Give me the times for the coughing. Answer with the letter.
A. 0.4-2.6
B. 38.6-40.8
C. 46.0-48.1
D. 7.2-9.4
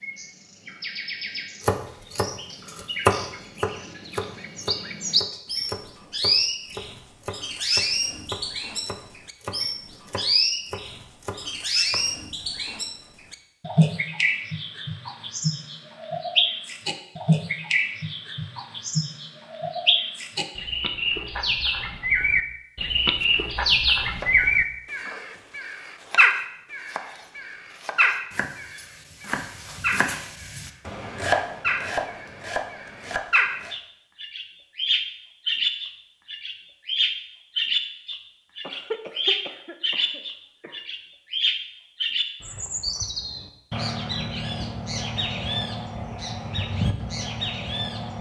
B.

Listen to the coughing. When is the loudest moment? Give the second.
39 s.